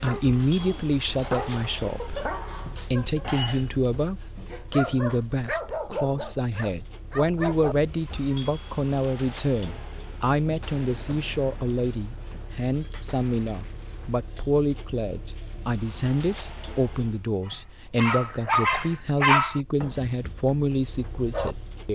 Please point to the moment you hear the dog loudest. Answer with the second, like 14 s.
19 s.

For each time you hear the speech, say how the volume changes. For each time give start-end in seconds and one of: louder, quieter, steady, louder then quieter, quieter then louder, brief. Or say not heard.
0.0-21.9 steady.